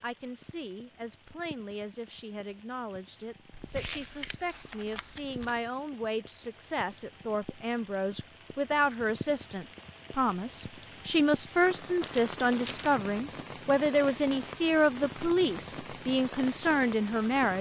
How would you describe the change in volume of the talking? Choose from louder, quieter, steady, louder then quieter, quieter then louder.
louder.